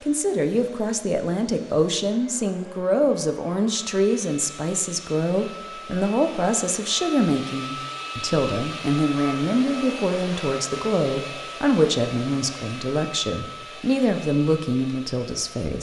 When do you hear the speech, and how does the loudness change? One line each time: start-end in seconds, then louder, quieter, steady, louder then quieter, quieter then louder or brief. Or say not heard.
0.0-15.7 steady.